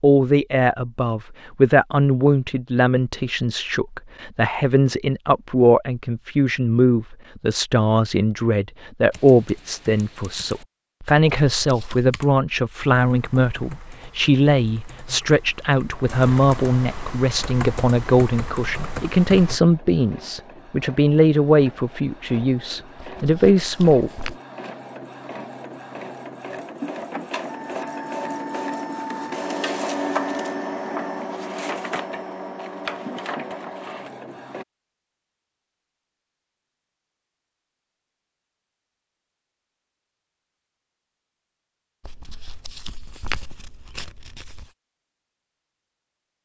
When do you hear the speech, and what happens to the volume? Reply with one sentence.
You can hear the speech from 0.0 to 24.1 s, at a steady volume.